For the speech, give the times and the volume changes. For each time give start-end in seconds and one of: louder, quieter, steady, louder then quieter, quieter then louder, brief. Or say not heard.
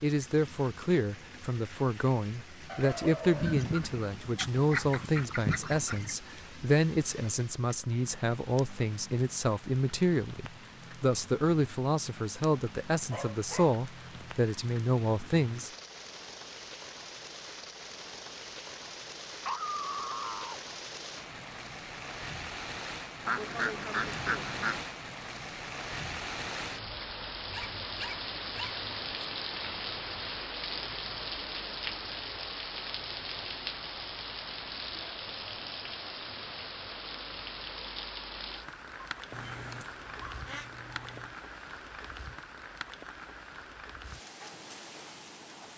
0.0-15.7 steady.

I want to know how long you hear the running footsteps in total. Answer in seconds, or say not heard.
not heard.